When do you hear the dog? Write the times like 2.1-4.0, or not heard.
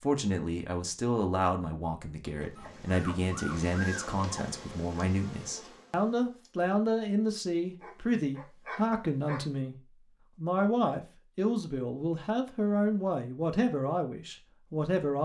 2.5-4.5, 7.8-9.4.